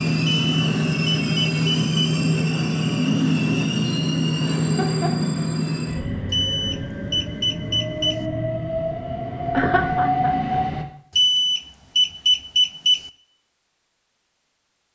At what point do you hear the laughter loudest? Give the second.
10 s.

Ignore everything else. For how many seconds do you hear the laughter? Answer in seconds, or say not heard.
2 s.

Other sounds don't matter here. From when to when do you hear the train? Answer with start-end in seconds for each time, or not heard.
0.0-10.8.